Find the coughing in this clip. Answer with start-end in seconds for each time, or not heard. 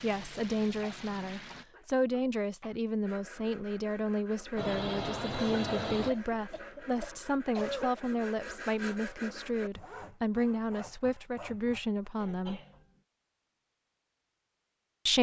0.8-2.8, 5.3-8.0, 12.2-12.8.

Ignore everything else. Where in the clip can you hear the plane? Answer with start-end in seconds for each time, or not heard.
0.0-1.6, 4.5-6.1.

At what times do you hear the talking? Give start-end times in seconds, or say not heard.
0.0-12.6.